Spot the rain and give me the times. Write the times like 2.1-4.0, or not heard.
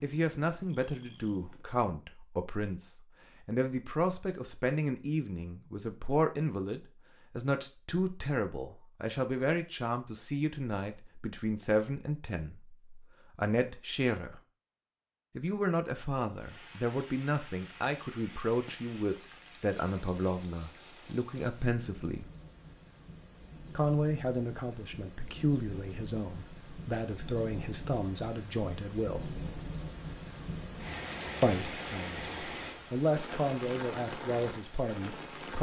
16.4-35.5.